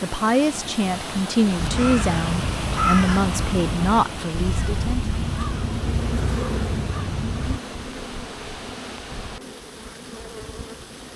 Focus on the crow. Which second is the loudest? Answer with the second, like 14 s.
3 s.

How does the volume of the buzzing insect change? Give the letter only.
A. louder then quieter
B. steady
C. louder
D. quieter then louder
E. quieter
E.